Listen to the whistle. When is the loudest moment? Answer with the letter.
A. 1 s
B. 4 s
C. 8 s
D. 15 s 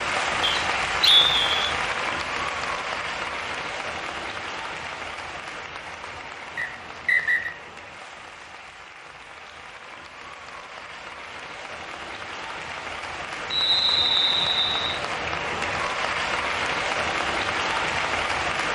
A.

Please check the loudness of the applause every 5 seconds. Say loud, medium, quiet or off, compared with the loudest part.
loud, quiet, medium, loud.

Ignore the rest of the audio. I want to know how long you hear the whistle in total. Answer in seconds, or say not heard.
4 s.